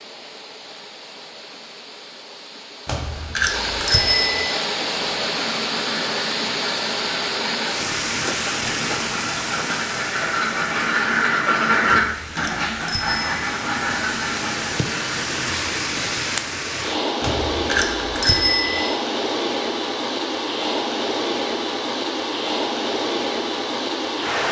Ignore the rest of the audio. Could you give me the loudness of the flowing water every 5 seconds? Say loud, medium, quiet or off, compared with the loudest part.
medium, loud, medium, loud, loud.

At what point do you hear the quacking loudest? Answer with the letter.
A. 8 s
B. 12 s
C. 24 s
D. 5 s
B.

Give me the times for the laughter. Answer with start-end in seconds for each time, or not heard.
not heard.